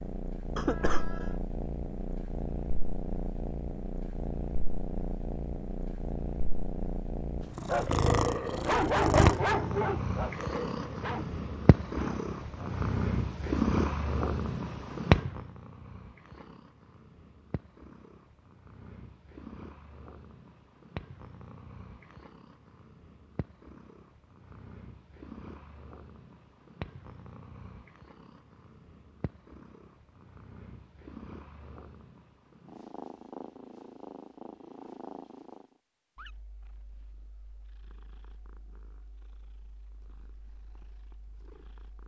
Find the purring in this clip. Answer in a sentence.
You can hear the purring from 0.0 to 42.0 s.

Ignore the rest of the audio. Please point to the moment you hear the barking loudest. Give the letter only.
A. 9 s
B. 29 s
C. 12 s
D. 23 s
A.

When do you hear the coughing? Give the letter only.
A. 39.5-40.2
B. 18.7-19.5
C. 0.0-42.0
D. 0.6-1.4
D.